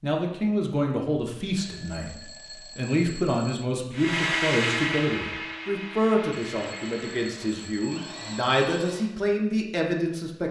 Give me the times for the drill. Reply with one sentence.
You can hear the drill from 3.9 to 9.1 s.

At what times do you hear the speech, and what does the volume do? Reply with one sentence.
The speech can be heard briefly from 0.0 to 2.1 s; and from 2.8 to 10.4 s, at a steady volume.